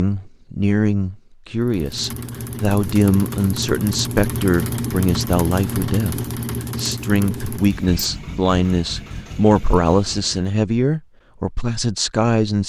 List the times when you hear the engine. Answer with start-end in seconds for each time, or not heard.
1.6-10.6.